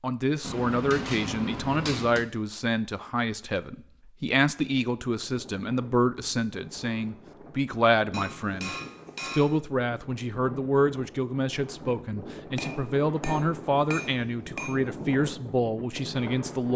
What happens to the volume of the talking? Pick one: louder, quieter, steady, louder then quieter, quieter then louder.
steady.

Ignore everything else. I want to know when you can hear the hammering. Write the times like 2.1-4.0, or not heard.
0.4-2.2, 8.1-9.6, 12.6-14.8.